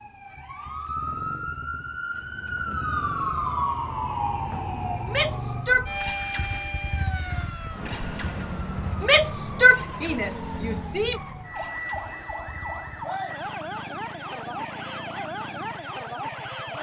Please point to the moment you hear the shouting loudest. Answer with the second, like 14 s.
10 s.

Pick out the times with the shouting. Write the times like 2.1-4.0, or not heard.
5.0-5.9, 9.0-11.2.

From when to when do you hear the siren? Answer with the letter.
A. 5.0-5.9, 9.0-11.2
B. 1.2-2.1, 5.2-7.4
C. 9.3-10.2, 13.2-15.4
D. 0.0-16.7
D.